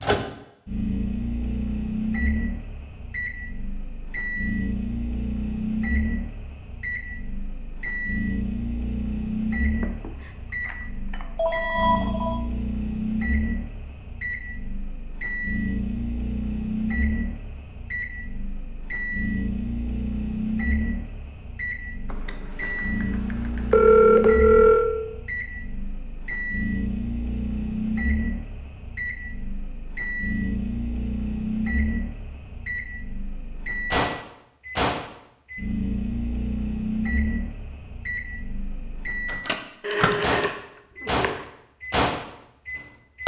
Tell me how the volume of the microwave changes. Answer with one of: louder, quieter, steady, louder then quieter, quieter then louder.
steady.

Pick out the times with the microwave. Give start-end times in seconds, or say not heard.
0.0-43.2.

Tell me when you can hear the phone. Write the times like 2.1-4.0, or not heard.
9.8-12.4, 22.1-24.9, 39.9-41.5.